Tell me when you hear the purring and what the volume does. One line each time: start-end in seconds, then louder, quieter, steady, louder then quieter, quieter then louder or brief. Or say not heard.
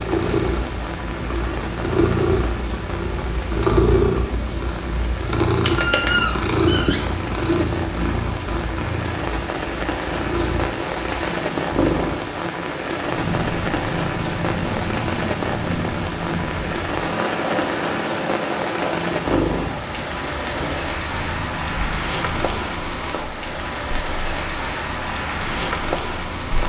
0.0-26.6 quieter.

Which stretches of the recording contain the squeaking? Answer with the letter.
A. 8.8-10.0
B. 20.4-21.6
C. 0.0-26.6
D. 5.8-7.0
D.